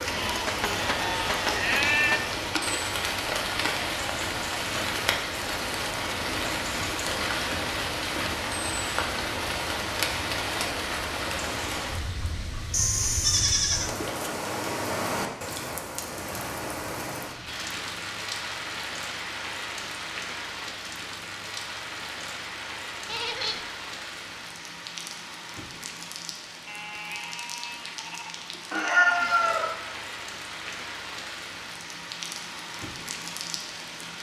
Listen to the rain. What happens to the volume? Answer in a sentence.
The volume of the rain goes down.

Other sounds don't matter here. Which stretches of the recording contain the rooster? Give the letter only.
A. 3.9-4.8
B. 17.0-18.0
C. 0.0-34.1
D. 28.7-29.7
D.